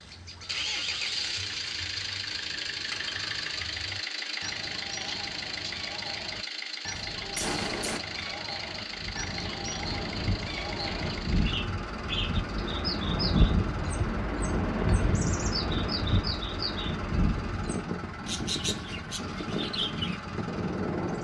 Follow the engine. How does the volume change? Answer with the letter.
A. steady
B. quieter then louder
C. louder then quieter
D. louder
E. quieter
E.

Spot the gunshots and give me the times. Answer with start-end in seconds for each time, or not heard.
7.0-8.0.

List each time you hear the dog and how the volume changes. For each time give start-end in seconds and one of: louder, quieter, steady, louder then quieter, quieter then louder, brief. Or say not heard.
not heard.